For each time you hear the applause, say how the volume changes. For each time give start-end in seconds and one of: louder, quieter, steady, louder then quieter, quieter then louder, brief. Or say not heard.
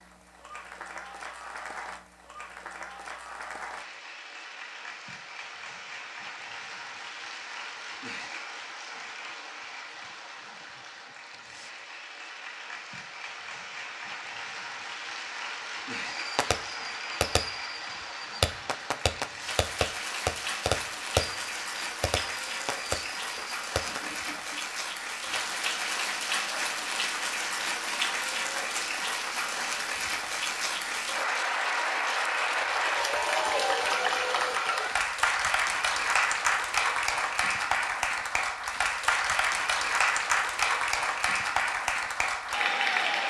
0.0-43.2 louder.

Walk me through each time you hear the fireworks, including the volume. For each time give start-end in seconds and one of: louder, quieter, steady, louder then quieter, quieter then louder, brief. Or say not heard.
16.1-24.0 louder then quieter.